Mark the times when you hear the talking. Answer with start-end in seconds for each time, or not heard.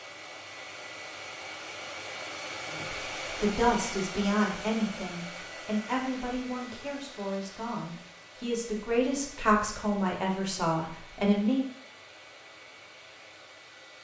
2.7-11.7.